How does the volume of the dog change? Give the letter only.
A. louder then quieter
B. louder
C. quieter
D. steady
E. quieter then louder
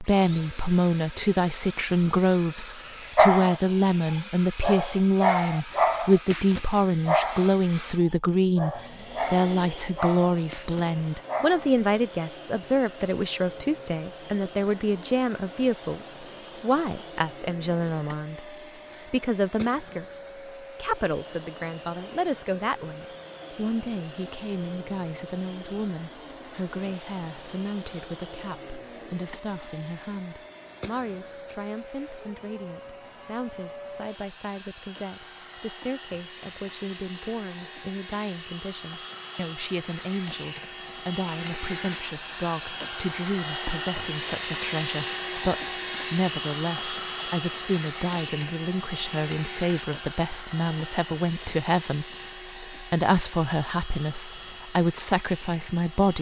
C.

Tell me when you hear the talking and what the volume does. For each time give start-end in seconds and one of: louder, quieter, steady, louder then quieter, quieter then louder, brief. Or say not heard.
0.0-56.1 quieter then louder.